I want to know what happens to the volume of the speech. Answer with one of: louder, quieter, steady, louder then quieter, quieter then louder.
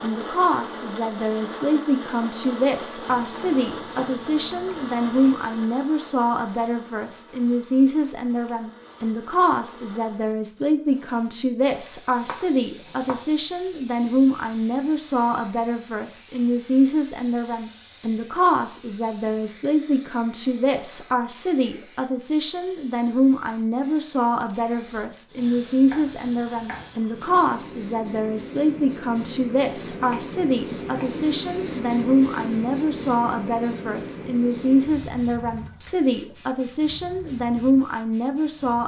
steady.